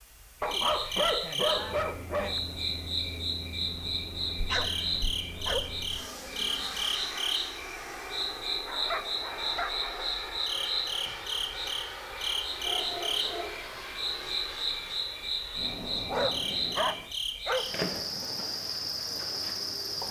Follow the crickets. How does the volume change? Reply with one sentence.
The volume of the crickets stays about the same.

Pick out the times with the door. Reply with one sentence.
You can't hear the door here.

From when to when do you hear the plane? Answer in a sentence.
The plane can be heard from 1.4 to 17.1 s.